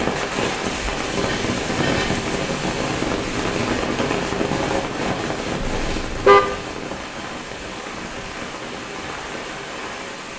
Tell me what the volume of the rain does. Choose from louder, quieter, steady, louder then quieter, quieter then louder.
quieter.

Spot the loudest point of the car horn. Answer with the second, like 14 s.
6 s.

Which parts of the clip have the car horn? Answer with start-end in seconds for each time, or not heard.
1.2-2.2, 5.7-6.4.